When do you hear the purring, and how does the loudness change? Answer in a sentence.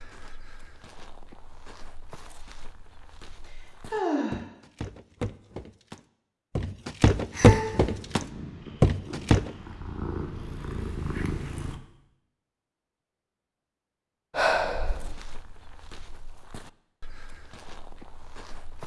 The purring can be heard from 7.8 to 11.8 s, getting louder.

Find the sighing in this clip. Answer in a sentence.
The sighing can be heard from 3.5 to 4.4 s, from 7.3 to 7.8 s and from 14.3 to 15.2 s.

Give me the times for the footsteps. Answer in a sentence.
The footsteps can be heard from 0.0 to 9.6 s and from 14.8 to 18.8 s.